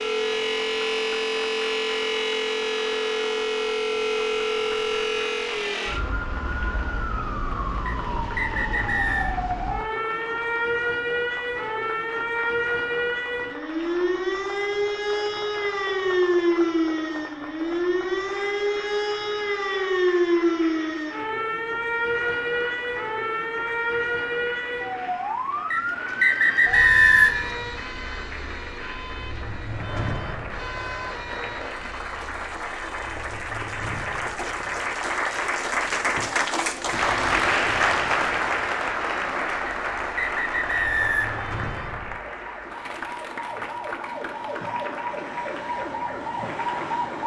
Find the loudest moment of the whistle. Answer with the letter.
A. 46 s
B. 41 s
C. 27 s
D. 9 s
C.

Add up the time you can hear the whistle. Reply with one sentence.
The whistle can be heard for 5 seconds in total.